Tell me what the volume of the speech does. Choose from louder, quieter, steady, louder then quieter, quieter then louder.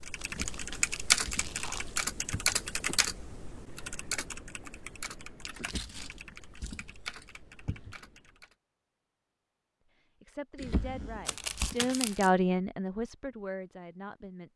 louder then quieter.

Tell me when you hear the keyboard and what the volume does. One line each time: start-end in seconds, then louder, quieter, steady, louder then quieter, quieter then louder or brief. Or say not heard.
0.0-8.6 quieter.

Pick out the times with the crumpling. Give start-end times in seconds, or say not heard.
0.1-1.9, 5.5-6.2, 11.2-12.3.